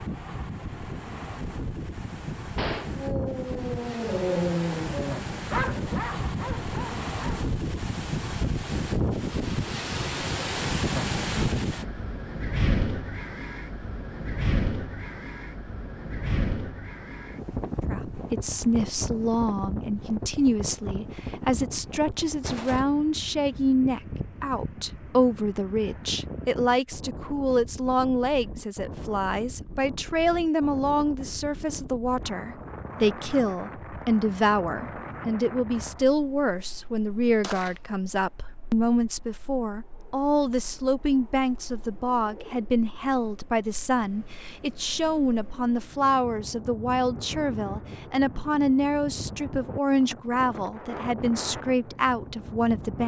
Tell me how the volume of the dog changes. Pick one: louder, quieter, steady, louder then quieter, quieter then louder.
louder then quieter.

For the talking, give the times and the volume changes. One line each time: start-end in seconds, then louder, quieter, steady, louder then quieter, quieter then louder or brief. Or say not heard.
17.9-53.0 steady.